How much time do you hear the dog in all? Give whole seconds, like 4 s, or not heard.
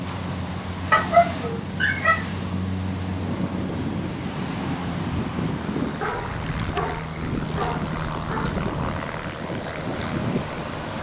4 s.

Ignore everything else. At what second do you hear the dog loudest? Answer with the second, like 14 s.
1 s.